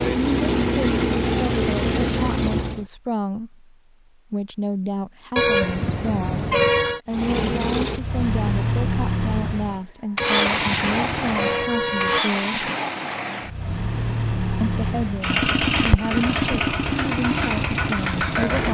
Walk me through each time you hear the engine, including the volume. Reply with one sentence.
The engine can be heard briefly from 0.0 to 2.9 s; and from 7.0 to 18.6 s, at a steady volume.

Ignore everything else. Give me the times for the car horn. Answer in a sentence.
The car horn can be heard from 5.3 to 7.0 s and from 10.2 to 12.2 s.